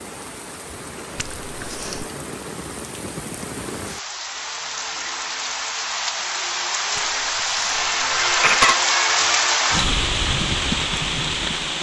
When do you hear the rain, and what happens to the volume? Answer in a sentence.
The rain can be heard from 0.0 to 11.7 s, getting louder.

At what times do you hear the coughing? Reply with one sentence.
The coughing can be heard from 1.1 to 2.0 s and from 7.0 to 8.8 s.